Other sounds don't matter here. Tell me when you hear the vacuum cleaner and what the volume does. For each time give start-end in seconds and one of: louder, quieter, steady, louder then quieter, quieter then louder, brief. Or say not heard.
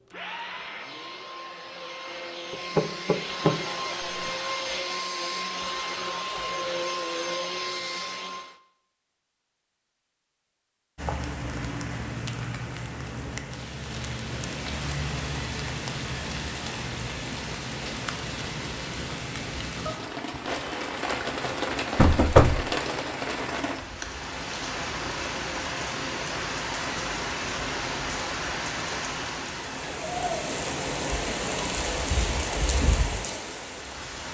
0.0-8.6 louder.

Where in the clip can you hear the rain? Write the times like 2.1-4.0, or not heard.
10.9-34.3.